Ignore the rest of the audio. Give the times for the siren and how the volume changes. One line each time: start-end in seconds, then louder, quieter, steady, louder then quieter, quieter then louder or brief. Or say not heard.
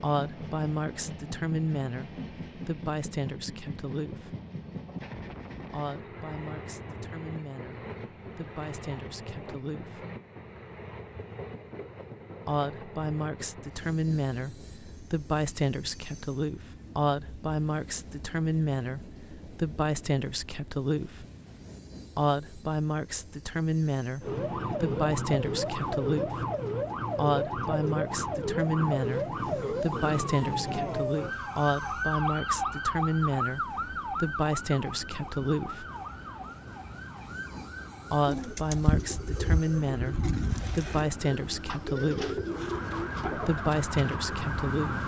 24.2-45.0 quieter then louder.